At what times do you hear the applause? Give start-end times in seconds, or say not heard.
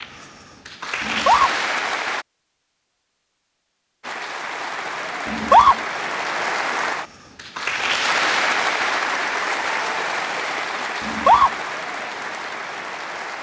0.0-2.2, 4.0-13.3.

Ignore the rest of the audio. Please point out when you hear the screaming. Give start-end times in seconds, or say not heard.
1.0-1.5, 5.2-5.8, 11.0-11.5.